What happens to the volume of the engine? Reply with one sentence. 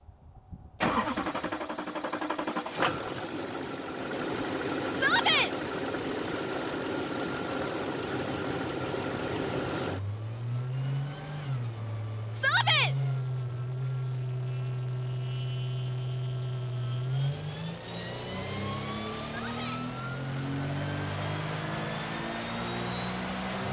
The loudness of the engine stays about the same.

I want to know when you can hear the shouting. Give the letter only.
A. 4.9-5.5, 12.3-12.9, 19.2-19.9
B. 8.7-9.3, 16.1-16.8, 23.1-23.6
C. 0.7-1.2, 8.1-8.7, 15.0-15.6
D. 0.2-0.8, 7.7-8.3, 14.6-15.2
A.